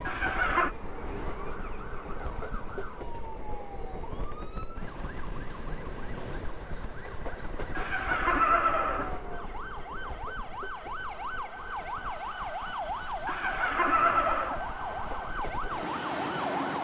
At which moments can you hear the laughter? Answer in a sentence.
The laughter can be heard from 0.1 to 0.8 s, from 7.8 to 9.2 s and from 13.2 to 14.6 s.